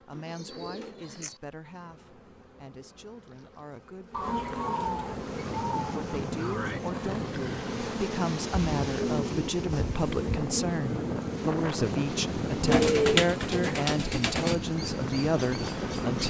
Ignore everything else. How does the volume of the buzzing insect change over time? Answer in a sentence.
The loudness of the buzzing insect goes up.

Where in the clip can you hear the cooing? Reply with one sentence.
You can hear the cooing from 0.1 to 1.4 s, from 4.1 to 6.0 s, from 8.5 to 10.4 s and from 12.7 to 14.6 s.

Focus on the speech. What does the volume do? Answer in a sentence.
The loudness of the speech goes up.